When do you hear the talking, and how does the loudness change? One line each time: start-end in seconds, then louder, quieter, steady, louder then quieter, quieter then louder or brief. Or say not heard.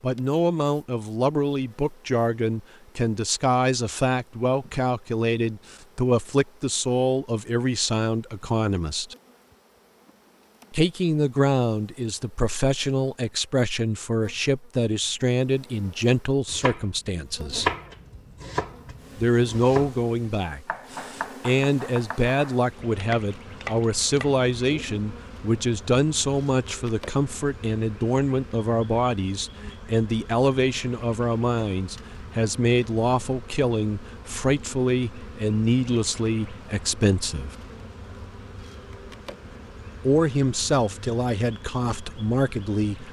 0.0-9.2 steady
10.7-17.7 steady
19.1-37.5 steady
40.0-43.0 brief.